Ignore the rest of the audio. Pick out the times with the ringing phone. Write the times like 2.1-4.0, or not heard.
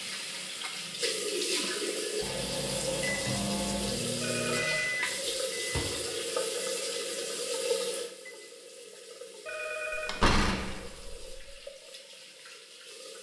4.2-4.8, 9.4-10.3.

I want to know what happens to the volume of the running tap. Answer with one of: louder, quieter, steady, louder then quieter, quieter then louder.
quieter.